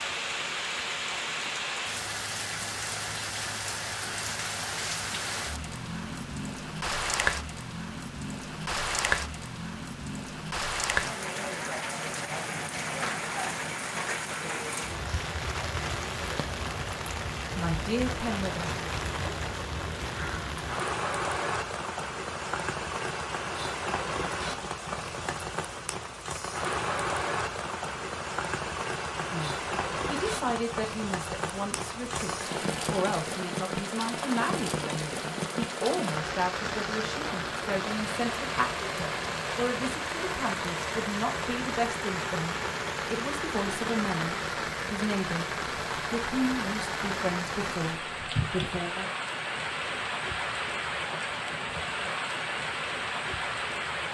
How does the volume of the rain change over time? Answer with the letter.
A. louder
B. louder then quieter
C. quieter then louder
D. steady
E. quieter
D.